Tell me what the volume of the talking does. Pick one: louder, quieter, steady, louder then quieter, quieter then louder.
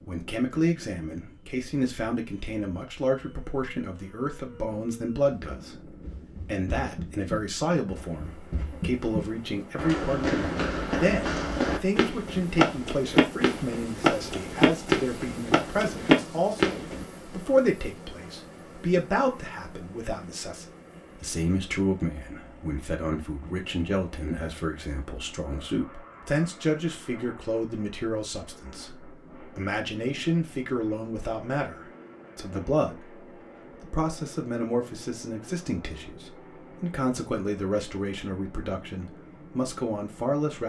steady.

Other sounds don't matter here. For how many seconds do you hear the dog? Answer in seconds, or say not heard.
not heard.